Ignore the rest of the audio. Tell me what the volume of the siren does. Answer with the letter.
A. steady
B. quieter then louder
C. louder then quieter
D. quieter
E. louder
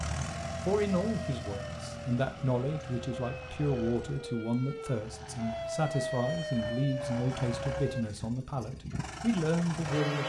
E.